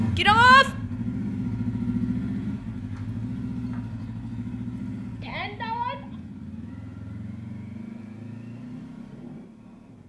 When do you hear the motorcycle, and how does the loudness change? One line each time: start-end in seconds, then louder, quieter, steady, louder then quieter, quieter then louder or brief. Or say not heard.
0.0-10.0 quieter.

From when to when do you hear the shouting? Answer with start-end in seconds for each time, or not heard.
0.1-0.7, 5.2-6.2.